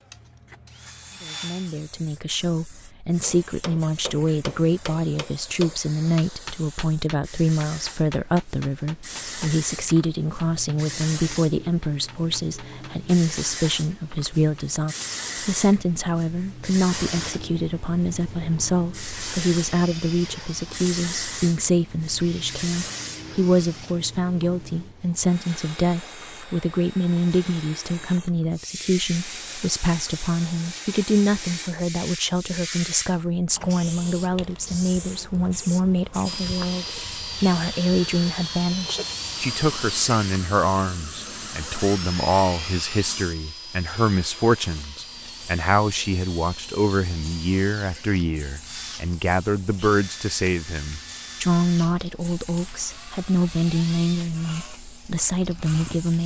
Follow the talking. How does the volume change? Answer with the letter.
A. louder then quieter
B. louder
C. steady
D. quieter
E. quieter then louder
C.